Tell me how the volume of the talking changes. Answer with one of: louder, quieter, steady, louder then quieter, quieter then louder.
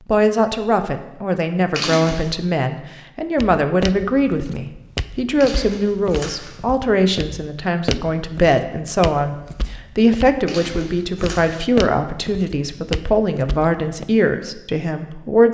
steady.